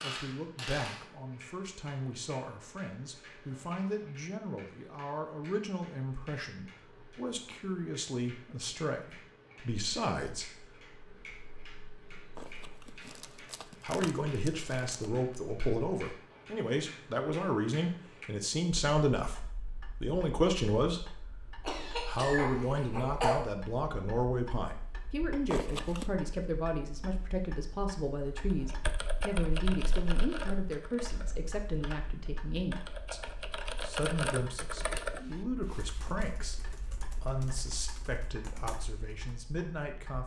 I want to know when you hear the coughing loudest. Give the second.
23 s.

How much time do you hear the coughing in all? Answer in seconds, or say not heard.
2 s.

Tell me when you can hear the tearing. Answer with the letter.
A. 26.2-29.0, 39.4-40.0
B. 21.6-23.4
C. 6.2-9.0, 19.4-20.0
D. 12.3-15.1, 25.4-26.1
D.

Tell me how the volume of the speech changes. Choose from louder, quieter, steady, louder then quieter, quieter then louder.
louder then quieter.